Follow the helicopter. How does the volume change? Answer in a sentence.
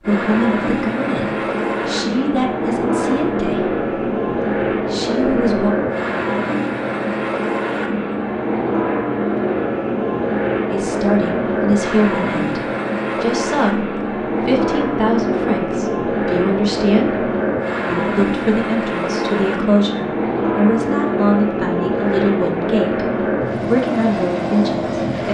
The volume of the helicopter stays about the same.